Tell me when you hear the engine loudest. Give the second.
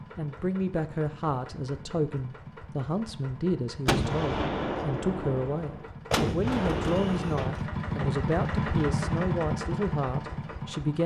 9 s.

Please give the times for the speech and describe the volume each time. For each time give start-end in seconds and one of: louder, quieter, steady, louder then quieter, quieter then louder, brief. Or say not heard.
0.1-11.0 steady.